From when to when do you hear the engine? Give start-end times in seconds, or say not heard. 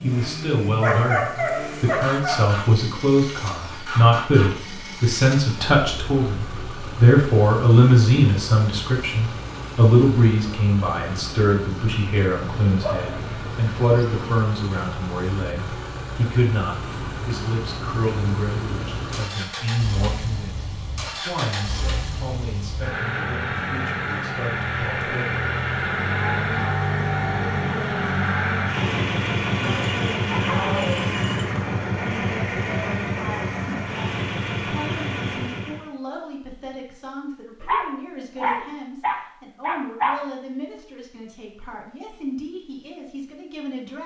0.0-35.9.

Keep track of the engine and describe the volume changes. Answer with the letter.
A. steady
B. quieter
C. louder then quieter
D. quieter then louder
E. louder
E.